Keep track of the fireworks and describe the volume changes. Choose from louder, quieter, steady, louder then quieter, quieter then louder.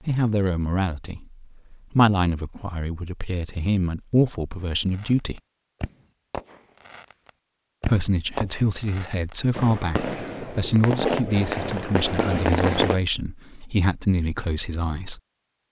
louder.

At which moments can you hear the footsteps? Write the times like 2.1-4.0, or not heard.
not heard.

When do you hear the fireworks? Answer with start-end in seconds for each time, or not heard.
4.7-13.0.